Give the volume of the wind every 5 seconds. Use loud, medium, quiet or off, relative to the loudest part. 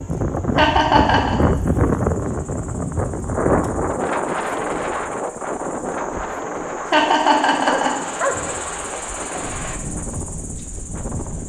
loud, medium, medium.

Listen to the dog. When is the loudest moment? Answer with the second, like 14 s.
8 s.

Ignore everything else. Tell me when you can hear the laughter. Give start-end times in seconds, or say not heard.
0.6-1.4, 6.9-7.9.